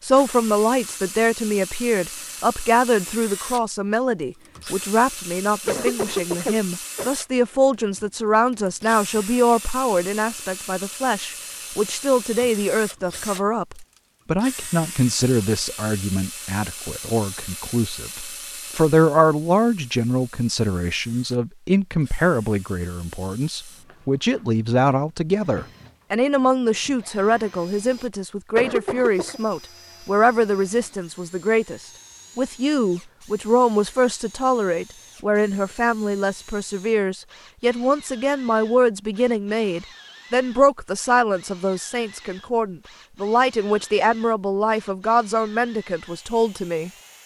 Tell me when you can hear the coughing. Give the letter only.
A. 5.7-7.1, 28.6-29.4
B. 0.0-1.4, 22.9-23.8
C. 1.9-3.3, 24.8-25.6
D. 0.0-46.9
A.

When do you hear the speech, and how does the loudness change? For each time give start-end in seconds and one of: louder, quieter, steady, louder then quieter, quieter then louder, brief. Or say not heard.
0.0-46.9 steady.